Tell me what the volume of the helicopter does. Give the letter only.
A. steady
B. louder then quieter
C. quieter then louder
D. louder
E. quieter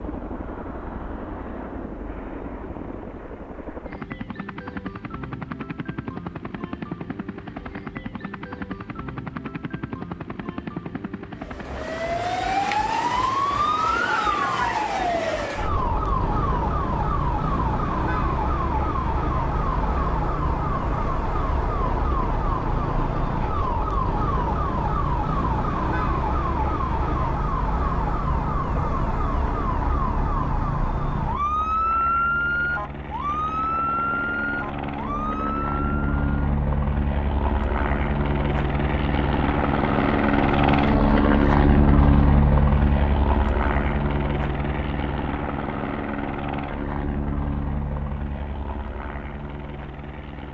D.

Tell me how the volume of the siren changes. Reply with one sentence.
The loudness of the siren stays about the same.